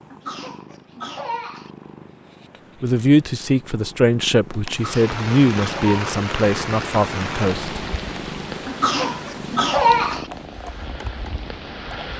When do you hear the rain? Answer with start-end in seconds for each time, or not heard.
4.7-12.1.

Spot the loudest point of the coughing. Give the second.
10 s.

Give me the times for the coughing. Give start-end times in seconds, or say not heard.
0.1-1.7, 4.7-6.0, 8.7-10.2.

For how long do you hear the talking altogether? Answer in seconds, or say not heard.
5 s.